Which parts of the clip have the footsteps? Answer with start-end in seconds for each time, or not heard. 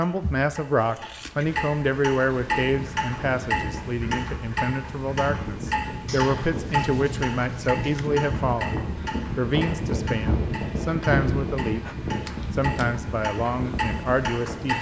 not heard.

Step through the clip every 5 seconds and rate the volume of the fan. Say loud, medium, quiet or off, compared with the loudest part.
medium, loud, loud.